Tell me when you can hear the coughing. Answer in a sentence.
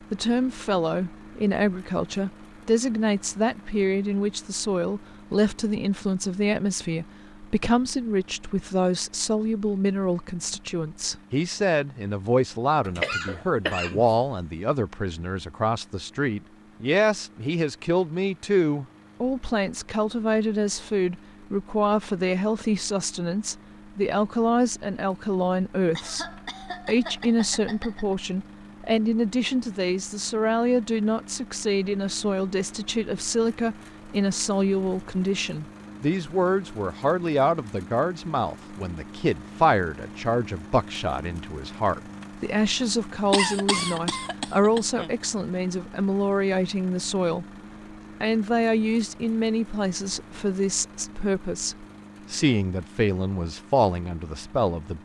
You can hear the coughing from 12.8 to 14.1 s, from 25.9 to 28.1 s and from 43.3 to 45.1 s.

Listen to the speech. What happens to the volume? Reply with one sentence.
The loudness of the speech stays about the same.